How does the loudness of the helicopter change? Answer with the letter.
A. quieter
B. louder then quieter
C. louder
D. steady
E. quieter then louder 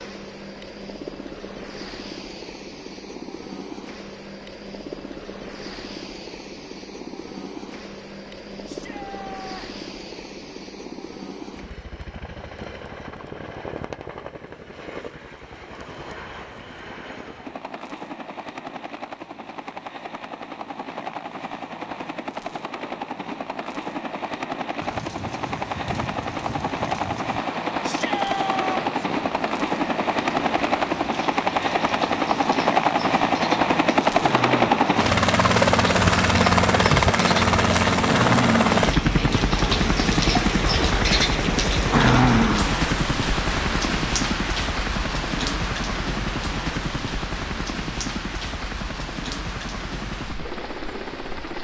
B.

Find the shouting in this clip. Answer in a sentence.
The shouting can be heard from 8.7 to 9.7 s and from 27.8 to 29.1 s.